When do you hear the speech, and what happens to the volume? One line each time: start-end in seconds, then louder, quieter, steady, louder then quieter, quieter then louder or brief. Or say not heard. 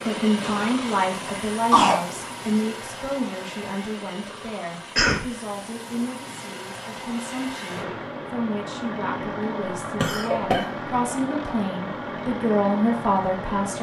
0.1-13.7 quieter then louder.